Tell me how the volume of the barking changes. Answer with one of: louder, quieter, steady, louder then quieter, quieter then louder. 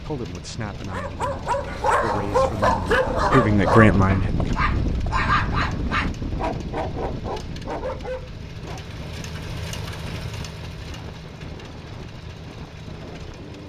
quieter.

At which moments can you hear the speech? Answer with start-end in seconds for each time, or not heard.
0.0-4.5.